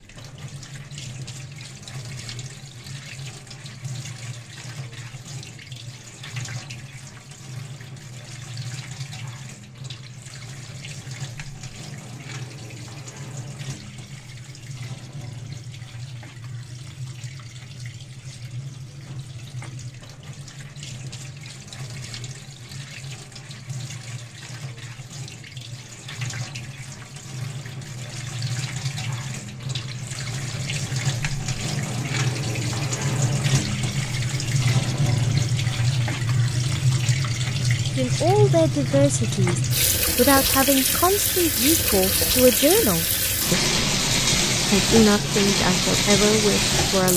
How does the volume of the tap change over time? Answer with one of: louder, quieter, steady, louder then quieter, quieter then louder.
louder.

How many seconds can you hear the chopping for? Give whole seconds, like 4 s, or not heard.
not heard.